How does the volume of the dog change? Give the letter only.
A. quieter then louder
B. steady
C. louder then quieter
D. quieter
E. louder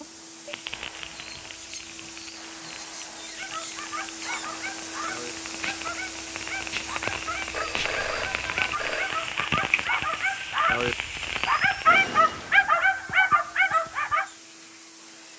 E.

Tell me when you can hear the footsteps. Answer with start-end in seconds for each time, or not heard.
not heard.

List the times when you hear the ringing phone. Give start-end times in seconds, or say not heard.
7.5-9.1.